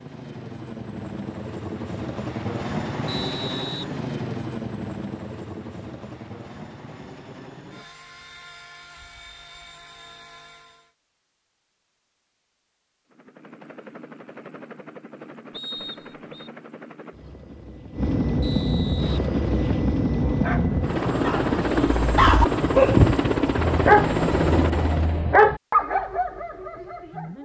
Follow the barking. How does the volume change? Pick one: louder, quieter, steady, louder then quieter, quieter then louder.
louder then quieter.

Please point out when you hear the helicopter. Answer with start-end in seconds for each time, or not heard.
0.0-10.9, 13.1-25.2.